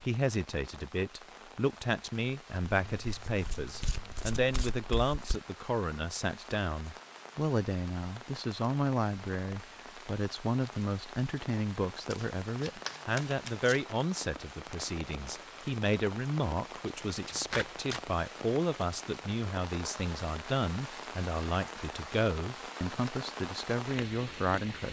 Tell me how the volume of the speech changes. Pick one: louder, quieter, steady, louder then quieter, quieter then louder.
steady.